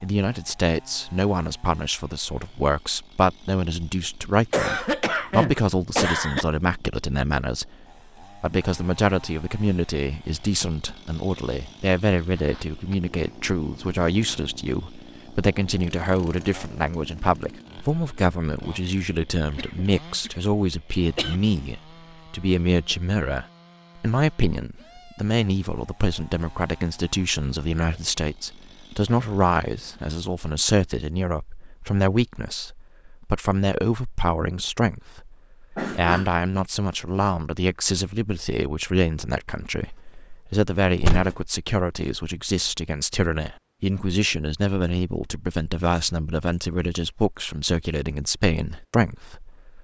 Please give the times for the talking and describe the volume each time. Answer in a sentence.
The talking can be heard from 0.0 to 49.8 s, at a steady volume.